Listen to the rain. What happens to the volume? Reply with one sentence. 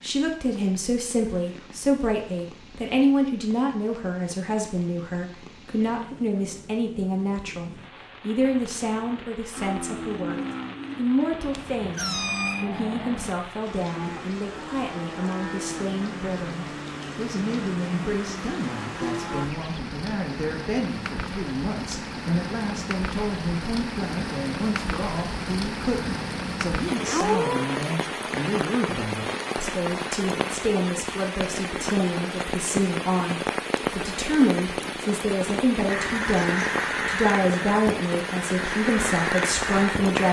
The volume of the rain goes up.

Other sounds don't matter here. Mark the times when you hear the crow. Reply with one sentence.
The crow can be heard from 35.9 to 40.2 s.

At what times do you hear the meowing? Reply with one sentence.
The meowing can be heard from 11.5 to 12.7 s and from 27.1 to 27.7 s.